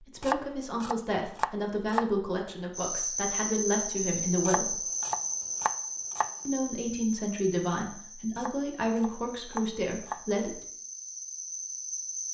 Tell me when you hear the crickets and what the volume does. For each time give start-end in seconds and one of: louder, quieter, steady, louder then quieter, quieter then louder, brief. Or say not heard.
2.7-12.2 quieter then louder.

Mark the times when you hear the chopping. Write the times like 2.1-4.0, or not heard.
0.2-2.1, 4.5-6.3, 8.3-10.2.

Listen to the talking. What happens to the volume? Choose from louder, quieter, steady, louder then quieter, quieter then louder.
steady.